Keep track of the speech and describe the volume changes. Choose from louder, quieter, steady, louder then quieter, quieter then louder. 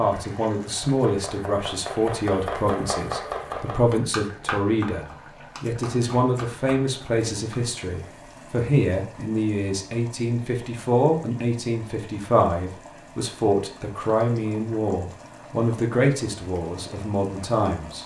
steady.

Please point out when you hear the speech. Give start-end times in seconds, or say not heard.
0.0-18.0.